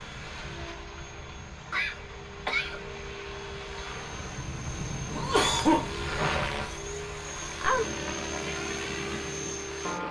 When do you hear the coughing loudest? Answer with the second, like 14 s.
6 s.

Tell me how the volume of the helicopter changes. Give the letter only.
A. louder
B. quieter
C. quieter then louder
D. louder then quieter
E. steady
A.